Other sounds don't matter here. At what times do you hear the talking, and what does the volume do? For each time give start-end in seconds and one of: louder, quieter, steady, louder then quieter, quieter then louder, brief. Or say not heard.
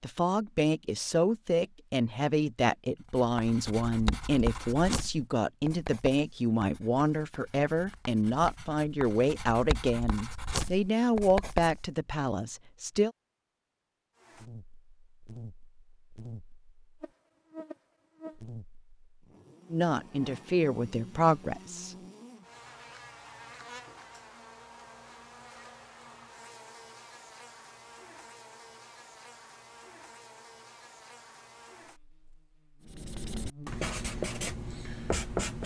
0.0-13.1 steady
19.7-21.9 brief.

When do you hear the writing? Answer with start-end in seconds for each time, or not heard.
3.1-11.9, 32.9-35.6.